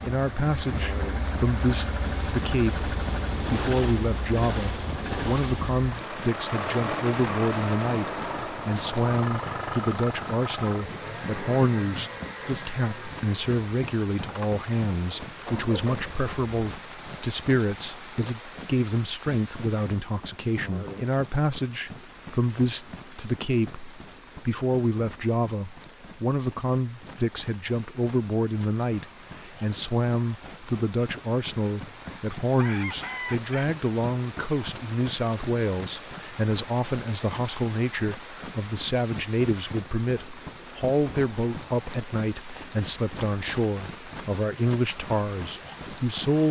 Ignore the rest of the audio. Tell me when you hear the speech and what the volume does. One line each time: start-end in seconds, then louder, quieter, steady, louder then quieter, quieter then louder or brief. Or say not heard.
0.0-46.4 steady.